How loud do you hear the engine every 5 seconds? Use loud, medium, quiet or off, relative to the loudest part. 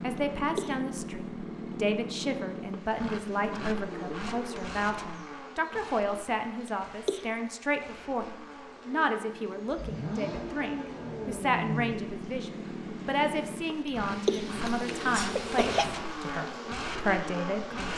loud, medium, loud, loud.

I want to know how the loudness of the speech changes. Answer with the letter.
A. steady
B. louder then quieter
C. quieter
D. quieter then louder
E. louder
A.